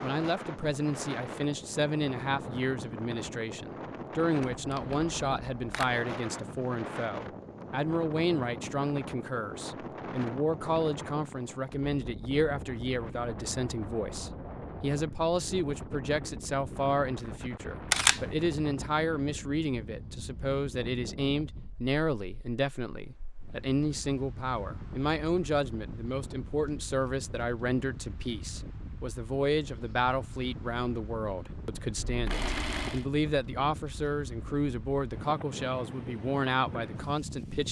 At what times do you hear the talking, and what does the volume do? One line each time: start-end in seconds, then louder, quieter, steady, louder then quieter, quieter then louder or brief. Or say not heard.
0.0-37.6 steady.